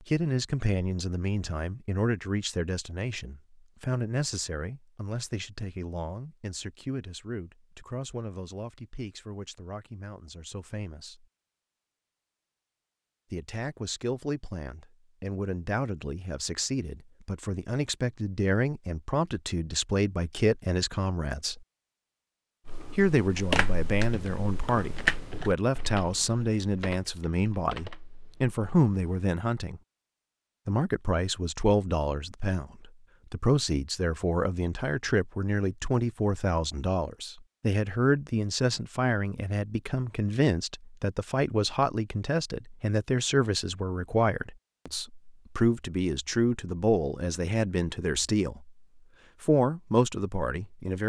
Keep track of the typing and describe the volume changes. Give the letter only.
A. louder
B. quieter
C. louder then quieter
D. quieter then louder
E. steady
B.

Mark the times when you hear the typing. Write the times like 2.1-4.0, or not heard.
22.6-29.2.